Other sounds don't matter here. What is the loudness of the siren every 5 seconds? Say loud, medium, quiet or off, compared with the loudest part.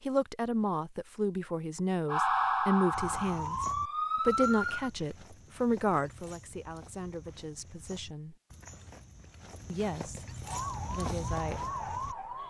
loud, off, medium.